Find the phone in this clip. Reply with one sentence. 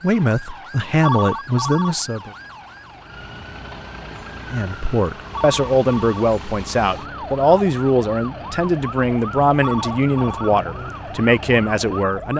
The phone can be heard from 1.0 to 1.9 s, from 5.3 to 6.2 s and from 9.6 to 10.6 s.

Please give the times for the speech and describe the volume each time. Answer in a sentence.
The speech can be heard briefly from 0.0 to 2.3 s; and from 4.5 to 12.3 s, at a steady volume.